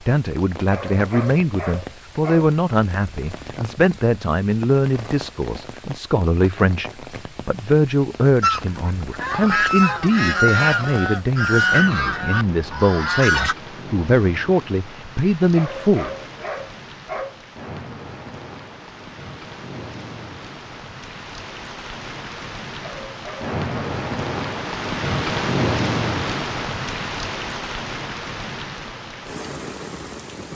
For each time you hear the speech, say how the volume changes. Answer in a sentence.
You can hear the speech from 0.1 to 16.1 s, at a steady volume.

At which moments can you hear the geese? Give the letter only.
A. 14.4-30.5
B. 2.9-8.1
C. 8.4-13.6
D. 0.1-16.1
C.